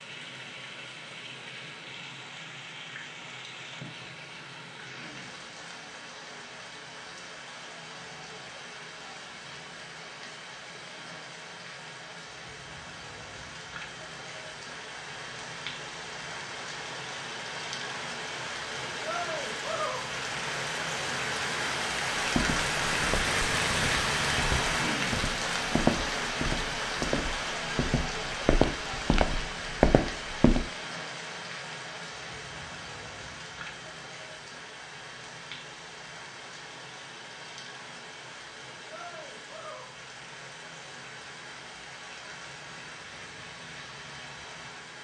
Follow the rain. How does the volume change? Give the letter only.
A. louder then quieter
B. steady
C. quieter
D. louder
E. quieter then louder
A.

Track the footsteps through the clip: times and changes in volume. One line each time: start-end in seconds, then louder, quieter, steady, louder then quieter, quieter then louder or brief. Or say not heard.
22.1-30.7 louder.